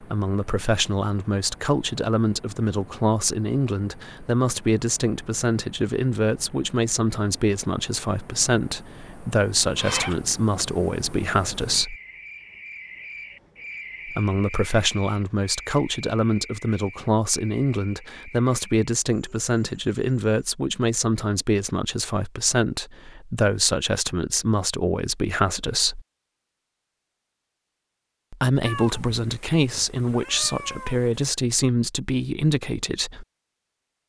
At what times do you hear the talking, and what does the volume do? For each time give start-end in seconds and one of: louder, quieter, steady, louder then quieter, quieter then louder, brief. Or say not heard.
0.0-11.9 steady
14.1-26.0 steady
28.3-33.2 steady.